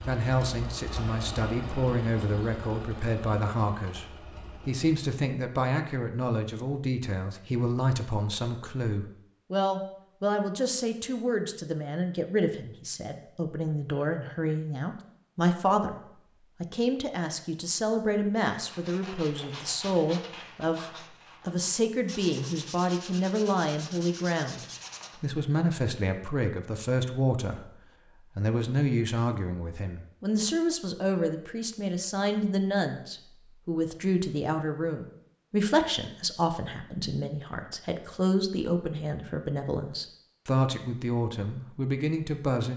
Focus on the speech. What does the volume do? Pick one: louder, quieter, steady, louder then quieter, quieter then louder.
steady.